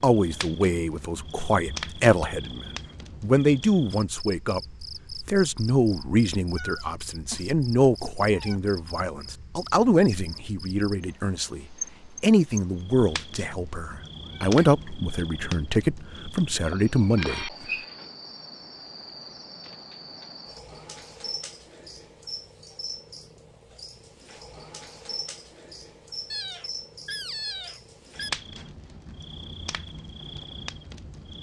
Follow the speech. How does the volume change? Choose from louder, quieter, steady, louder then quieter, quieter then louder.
steady.